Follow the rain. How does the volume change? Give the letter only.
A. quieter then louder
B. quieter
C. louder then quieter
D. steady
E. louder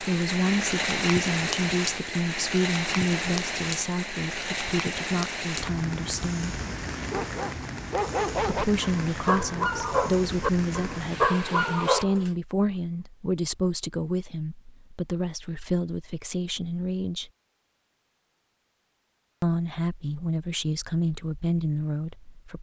B.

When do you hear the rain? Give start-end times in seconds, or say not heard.
0.0-12.1.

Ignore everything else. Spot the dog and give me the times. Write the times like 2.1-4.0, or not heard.
7.0-12.3.